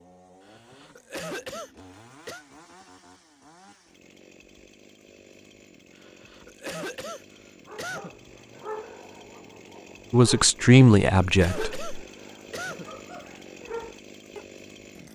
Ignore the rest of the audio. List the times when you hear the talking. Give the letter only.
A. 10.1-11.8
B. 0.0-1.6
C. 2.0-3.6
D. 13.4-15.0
A.